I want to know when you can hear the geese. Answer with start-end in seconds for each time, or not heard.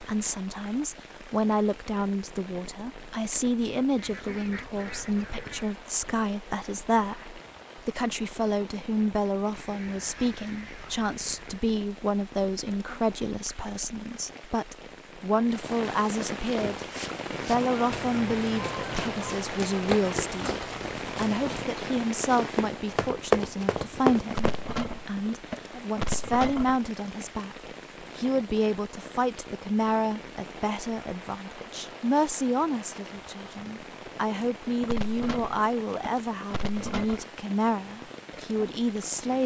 4.0-5.7, 9.5-11.7, 17.3-19.4, 24.3-26.8, 34.8-37.2.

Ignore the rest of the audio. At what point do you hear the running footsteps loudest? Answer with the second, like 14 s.
23 s.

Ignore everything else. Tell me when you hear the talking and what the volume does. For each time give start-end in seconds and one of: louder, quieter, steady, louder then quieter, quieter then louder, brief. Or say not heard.
0.0-16.9 steady
17.4-39.4 steady.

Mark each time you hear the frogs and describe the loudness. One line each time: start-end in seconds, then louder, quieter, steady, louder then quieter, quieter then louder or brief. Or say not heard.
not heard.